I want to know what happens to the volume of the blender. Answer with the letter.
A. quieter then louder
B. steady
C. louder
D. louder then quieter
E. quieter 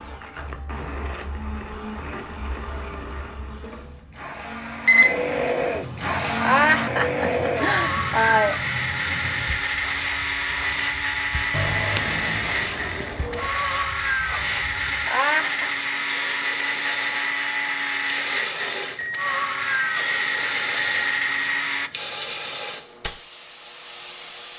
C.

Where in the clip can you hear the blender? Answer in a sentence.
The blender can be heard from 0.0 to 21.9 s.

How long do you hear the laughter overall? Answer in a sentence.
You can hear the laughter for 3 seconds altogether.